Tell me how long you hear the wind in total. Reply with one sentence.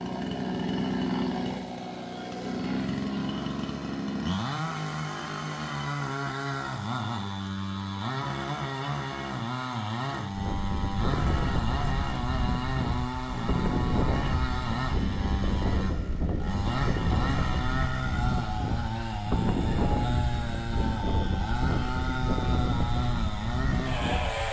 The wind can be heard for 14 seconds in total.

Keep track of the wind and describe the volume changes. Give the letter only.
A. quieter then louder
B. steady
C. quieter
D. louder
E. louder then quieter
B.